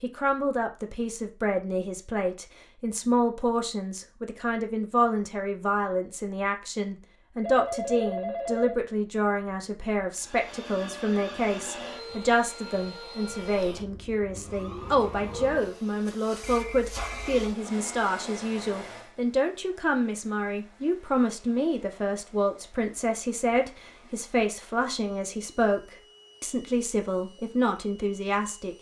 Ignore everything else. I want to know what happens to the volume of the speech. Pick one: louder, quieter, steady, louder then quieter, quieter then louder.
steady.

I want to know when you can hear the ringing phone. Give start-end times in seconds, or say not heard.
7.4-8.8, 16.4-17.4.